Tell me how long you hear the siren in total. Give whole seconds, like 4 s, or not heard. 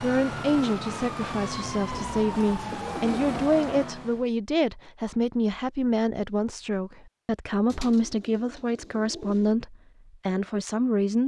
4 s.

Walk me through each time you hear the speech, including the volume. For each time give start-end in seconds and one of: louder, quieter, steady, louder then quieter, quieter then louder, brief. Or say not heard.
0.0-11.2 steady.